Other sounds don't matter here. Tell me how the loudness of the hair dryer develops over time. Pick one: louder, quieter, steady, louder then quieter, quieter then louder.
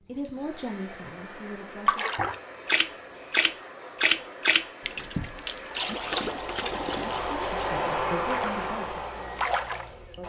louder.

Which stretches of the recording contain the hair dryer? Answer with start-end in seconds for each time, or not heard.
0.0-10.2.